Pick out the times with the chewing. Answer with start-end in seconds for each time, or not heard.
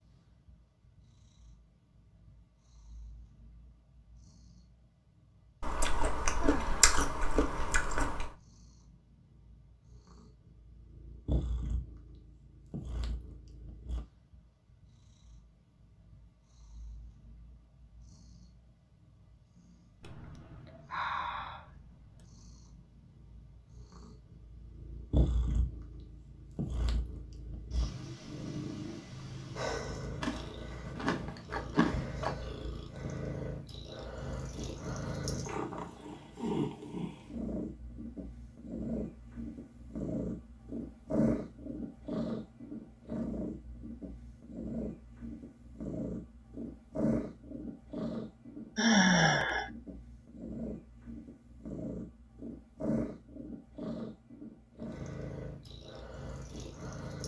5.6-8.3, 30.2-32.4.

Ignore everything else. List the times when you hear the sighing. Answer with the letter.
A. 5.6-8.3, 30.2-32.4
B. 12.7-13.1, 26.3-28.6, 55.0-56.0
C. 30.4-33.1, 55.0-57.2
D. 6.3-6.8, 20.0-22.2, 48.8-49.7
D.